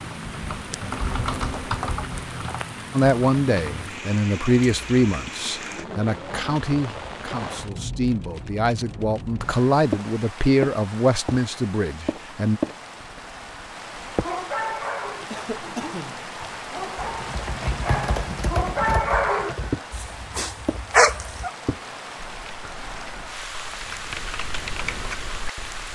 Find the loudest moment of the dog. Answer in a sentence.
The loudest moment of the dog is at 21 seconds.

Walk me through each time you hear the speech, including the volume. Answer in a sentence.
The speech can be heard from 3.0 to 12.6 s, getting quieter then louder.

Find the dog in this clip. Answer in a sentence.
The dog can be heard from 14.2 to 21.5 s.